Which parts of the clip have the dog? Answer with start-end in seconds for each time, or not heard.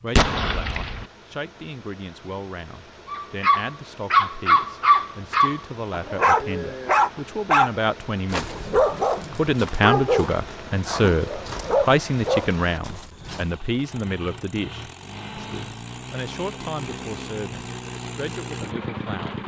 3.1-13.6.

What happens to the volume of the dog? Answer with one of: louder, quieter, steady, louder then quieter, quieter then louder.
quieter.